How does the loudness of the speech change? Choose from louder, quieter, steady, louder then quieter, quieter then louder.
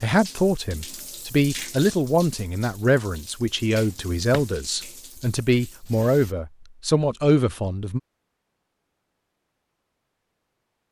steady.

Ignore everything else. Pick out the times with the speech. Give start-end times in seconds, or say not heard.
0.0-8.0.